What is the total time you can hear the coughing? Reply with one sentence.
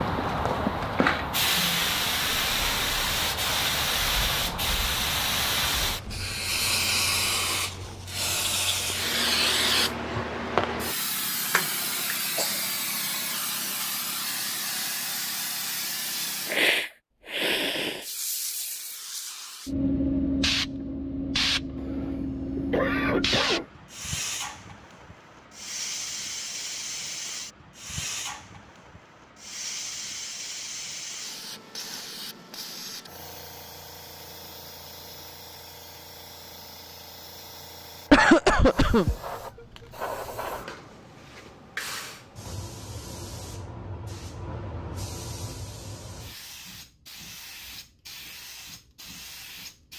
You can hear the coughing for 4 seconds altogether.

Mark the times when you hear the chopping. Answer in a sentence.
The chopping can't be heard in this clip.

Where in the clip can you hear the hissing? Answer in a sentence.
You can hear the hissing from 0.0 to 49.9 s.